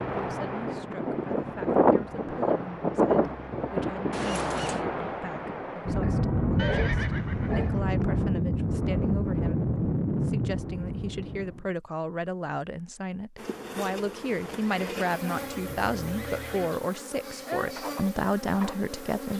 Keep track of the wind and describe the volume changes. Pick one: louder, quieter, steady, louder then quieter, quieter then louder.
steady.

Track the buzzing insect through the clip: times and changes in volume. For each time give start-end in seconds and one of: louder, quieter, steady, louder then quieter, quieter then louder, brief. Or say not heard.
13.3-19.3 steady.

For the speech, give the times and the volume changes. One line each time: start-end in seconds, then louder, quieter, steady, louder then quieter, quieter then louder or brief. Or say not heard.
0.1-19.3 louder.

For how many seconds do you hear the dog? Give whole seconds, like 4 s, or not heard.
2 s.